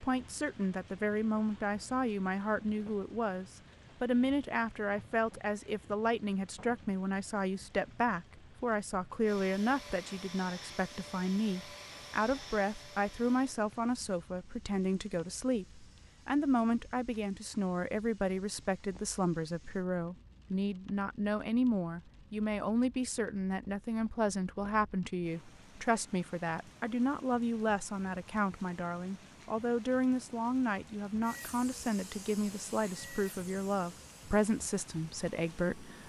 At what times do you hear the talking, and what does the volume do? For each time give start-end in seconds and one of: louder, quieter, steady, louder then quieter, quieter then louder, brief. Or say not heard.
0.0-36.0 steady.